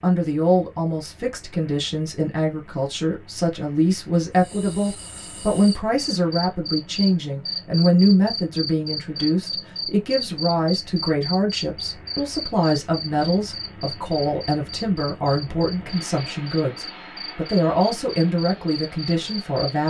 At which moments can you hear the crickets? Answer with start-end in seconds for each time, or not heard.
4.3-19.8.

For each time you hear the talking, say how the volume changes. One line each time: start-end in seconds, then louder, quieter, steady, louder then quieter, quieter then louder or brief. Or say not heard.
0.0-19.8 steady.